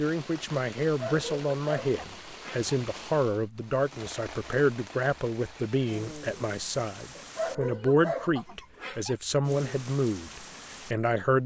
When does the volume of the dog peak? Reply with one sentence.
The loudest moment of the dog is at 8 seconds.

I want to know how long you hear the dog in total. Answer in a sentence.
The dog can be heard for 4 seconds in total.